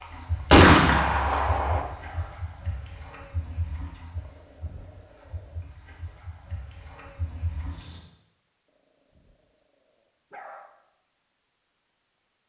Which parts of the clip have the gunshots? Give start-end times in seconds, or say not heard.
0.5-1.8.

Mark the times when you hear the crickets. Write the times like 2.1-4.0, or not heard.
0.0-8.0.